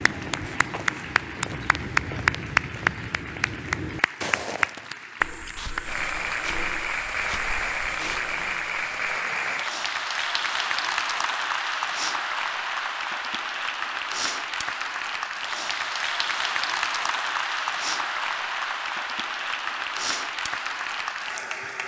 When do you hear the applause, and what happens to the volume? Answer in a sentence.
You can hear the applause from 0.0 to 21.8 s, at a steady volume.